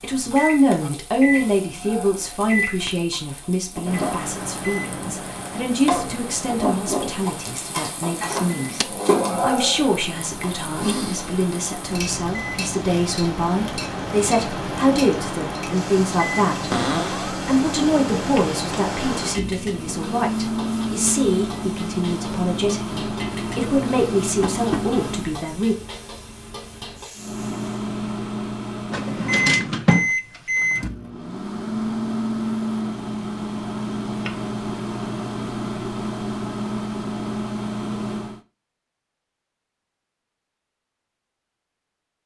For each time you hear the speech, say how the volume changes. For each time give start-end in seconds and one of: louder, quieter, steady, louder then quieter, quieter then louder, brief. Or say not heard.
0.0-25.8 steady.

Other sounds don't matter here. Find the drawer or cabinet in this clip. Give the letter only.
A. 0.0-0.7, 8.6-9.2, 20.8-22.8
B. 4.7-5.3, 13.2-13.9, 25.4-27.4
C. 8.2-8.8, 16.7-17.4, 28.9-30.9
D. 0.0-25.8
C.